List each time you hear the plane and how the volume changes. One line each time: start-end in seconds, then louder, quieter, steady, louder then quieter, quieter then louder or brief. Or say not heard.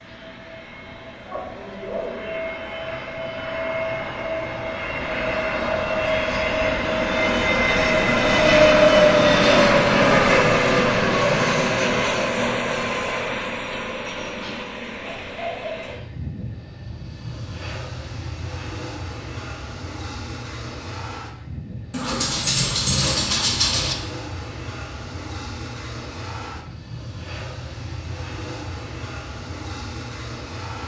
0.0-30.8 louder then quieter.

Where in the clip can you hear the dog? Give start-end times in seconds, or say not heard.
1.2-2.5, 14.2-15.9, 21.9-23.9.